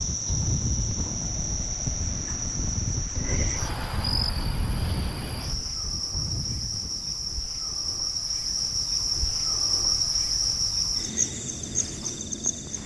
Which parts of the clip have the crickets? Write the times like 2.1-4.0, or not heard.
0.0-12.8.